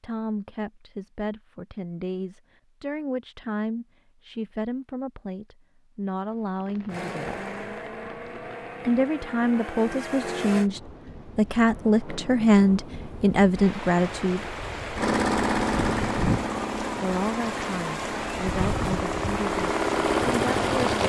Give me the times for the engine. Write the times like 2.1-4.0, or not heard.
6.9-10.7, 14.9-21.0.